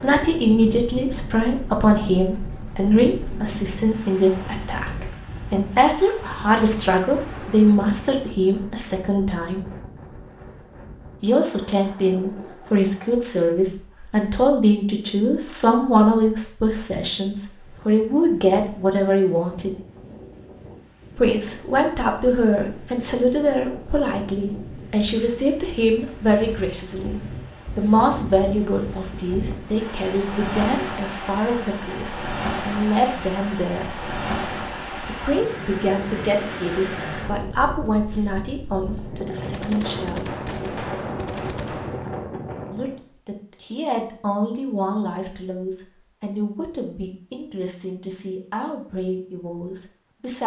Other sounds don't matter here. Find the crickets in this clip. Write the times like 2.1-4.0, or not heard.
not heard.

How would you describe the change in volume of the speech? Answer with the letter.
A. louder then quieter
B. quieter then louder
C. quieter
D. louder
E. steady
C.